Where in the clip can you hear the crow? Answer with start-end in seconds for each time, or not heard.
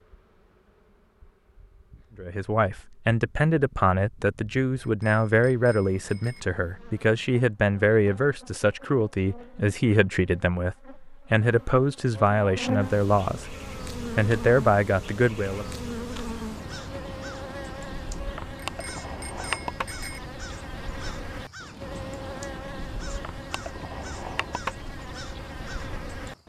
16.1-26.4.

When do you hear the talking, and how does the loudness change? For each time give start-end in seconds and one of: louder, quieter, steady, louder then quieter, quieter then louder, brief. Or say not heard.
2.1-15.7 steady.